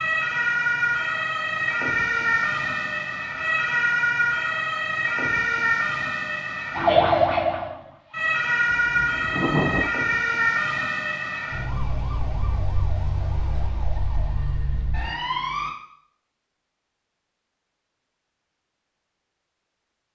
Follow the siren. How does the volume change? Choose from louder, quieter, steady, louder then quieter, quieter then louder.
quieter.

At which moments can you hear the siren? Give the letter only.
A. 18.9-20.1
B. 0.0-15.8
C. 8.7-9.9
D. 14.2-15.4
B.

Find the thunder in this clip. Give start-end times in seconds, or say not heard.
8.7-9.9.